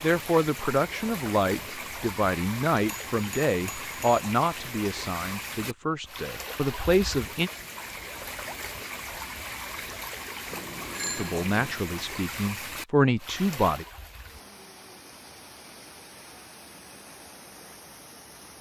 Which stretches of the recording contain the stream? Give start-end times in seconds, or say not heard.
0.0-18.5.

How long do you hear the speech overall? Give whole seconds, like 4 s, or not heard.
10 s.